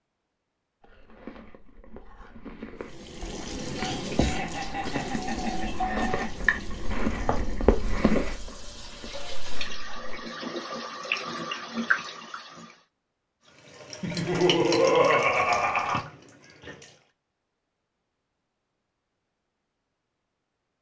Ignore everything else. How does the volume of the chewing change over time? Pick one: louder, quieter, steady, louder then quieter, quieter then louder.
louder then quieter.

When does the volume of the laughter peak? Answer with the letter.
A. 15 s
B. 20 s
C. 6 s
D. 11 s
A.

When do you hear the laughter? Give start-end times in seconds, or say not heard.
3.8-6.3, 14.0-16.0.